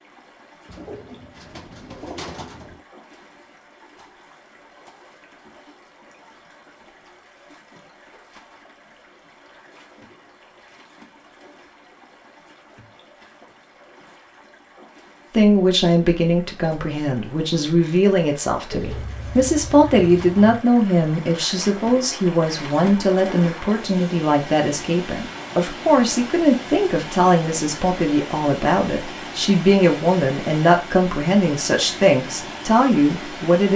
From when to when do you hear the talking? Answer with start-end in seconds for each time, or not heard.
15.3-33.7.